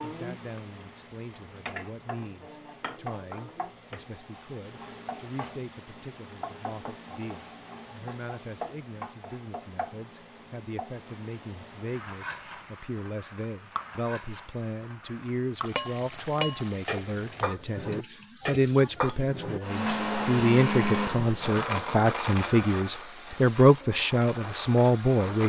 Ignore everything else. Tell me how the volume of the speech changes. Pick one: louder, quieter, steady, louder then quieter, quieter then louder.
louder.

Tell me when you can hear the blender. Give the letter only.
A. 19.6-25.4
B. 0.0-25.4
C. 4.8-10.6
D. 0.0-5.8
A.